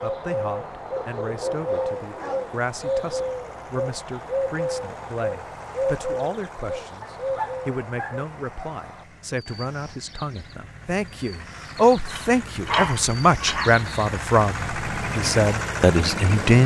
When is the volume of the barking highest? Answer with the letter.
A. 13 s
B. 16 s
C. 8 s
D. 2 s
A.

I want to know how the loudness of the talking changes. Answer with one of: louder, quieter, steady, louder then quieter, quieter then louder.
louder.